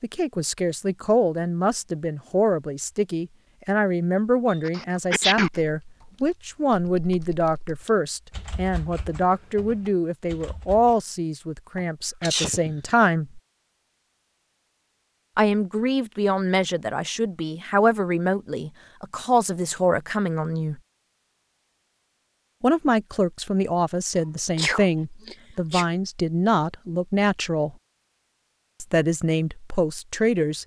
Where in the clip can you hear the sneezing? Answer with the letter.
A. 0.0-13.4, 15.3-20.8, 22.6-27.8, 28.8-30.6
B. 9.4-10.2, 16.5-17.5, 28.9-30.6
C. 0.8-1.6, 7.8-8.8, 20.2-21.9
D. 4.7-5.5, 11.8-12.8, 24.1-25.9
D.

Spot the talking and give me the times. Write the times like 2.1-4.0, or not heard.
0.0-13.4, 15.3-20.8, 22.6-27.8, 28.8-30.6.